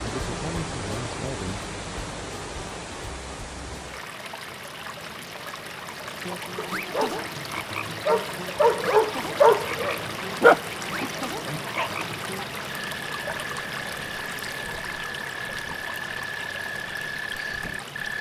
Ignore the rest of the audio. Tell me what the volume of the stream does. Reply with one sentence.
The volume of the stream stays about the same.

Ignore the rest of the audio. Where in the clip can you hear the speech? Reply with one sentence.
You can hear the speech from 0.0 to 1.6 s.